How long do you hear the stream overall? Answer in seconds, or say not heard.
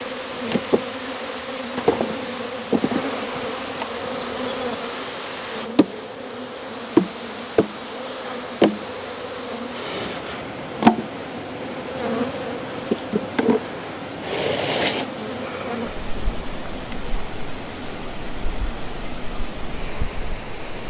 21 s.